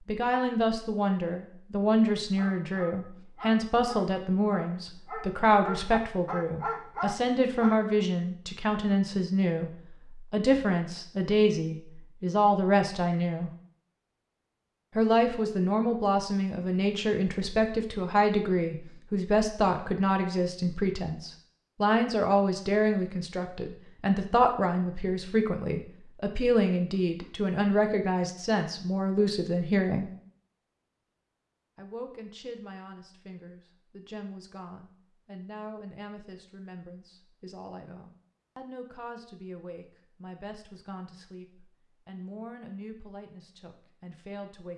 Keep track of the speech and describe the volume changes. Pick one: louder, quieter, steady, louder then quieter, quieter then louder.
quieter.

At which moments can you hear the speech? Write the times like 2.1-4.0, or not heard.
0.1-13.5, 14.9-30.1, 31.8-44.7.